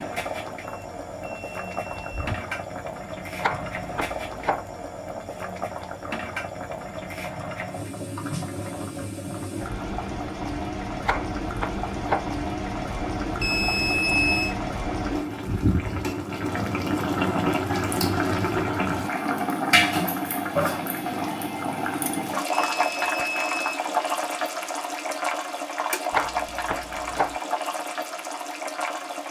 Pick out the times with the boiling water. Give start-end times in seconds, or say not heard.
0.0-29.2.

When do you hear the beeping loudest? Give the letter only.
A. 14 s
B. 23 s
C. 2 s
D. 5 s
A.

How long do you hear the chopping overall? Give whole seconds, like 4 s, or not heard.
4 s.